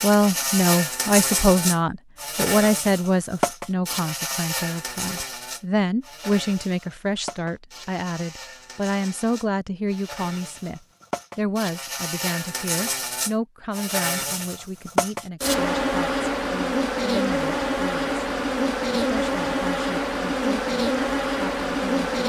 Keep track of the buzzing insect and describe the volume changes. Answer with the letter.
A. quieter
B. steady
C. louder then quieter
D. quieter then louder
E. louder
D.